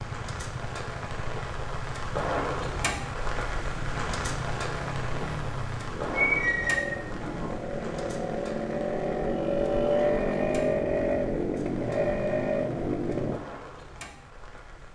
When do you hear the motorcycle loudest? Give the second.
10 s.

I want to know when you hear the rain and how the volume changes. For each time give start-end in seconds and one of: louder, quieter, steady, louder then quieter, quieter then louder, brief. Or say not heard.
0.0-14.8 quieter.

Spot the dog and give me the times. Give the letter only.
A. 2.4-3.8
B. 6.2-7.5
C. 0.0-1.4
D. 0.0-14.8
B.